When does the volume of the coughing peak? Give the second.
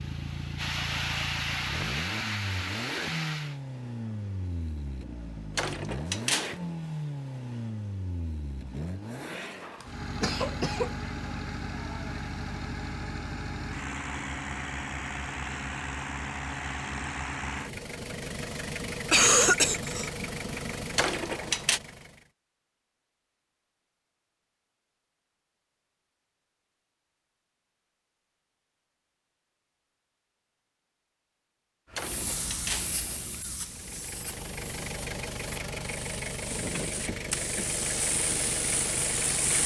19 s.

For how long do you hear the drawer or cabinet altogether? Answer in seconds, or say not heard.
3 s.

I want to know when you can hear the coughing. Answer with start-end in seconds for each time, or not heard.
9.8-10.9, 18.4-20.1, 36.8-37.8.